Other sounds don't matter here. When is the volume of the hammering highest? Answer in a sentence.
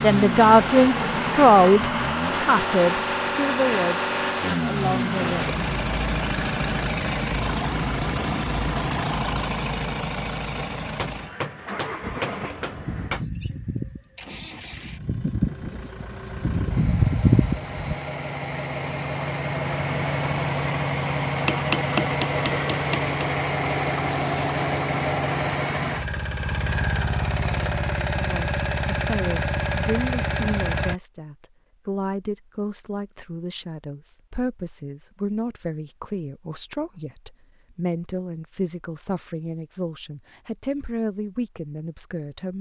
The loudest moment of the hammering is at 22 seconds.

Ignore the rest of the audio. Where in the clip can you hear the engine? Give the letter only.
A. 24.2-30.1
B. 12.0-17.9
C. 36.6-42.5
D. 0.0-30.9
D.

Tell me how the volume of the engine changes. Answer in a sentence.
The volume of the engine goes down, then up.